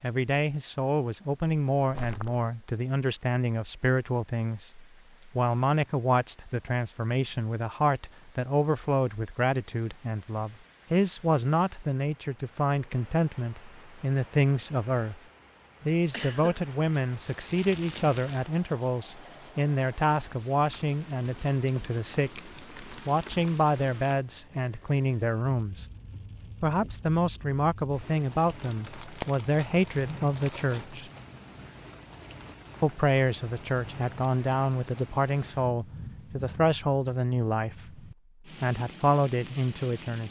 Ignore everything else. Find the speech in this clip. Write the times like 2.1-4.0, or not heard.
0.0-15.2, 15.8-25.9, 26.6-31.1, 32.8-40.2.